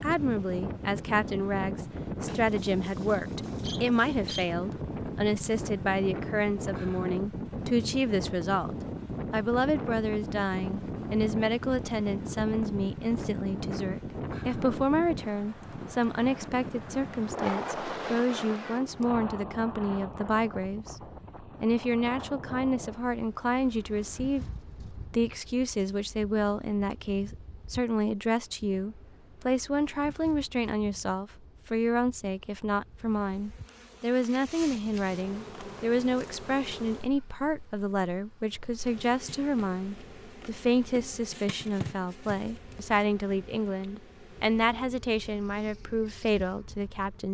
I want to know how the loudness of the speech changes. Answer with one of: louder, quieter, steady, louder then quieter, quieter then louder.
steady.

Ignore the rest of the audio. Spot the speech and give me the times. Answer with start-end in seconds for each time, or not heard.
0.0-47.2.